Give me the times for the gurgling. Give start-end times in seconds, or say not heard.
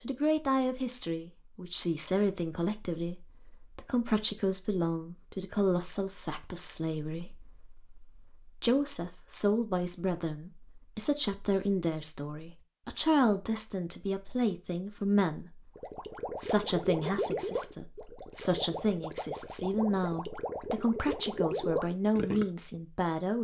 15.8-22.4.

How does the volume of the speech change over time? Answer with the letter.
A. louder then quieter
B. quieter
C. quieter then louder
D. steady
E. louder
D.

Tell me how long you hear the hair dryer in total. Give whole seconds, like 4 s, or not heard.
not heard.